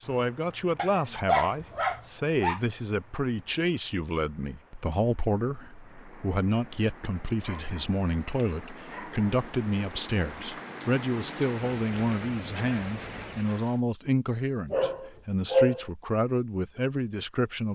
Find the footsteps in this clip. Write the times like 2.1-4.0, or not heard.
not heard.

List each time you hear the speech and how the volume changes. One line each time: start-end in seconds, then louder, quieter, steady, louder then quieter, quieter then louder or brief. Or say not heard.
0.1-17.7 steady.